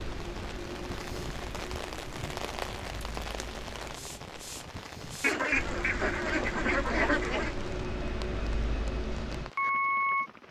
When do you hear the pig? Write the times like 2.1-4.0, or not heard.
not heard.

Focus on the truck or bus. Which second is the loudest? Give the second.
10 s.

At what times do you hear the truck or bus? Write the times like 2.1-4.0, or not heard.
0.0-10.3.